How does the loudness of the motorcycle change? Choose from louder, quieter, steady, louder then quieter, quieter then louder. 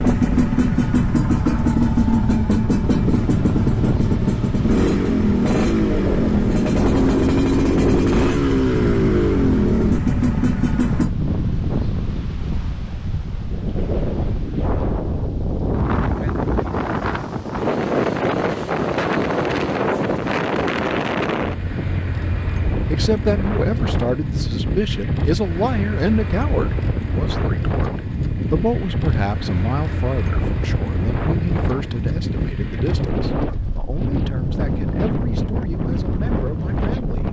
steady.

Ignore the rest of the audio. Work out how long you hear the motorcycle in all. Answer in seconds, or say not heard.
11 s.